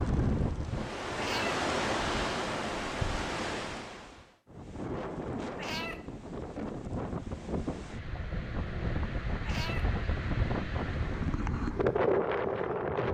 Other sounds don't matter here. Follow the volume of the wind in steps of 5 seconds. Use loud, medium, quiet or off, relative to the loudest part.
loud, medium, loud.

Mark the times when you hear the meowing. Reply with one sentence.
You can hear the meowing from 1.1 to 1.6 s, from 5.5 to 6.0 s and from 9.4 to 9.8 s.